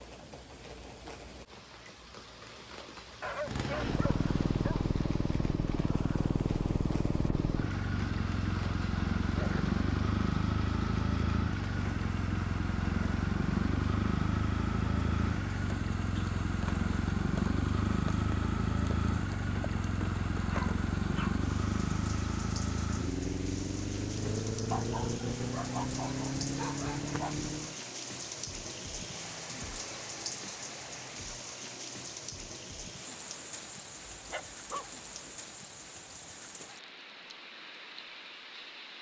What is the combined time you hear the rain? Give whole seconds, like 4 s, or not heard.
39 s.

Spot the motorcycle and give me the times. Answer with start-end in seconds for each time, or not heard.
3.4-27.8.